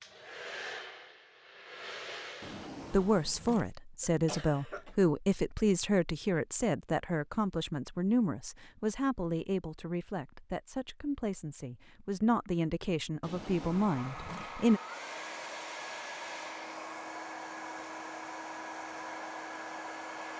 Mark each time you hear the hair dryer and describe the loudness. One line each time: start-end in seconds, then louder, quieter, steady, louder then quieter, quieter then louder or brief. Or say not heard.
0.0-2.7 brief
13.4-20.3 steady.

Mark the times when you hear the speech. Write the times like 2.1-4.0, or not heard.
2.9-14.8.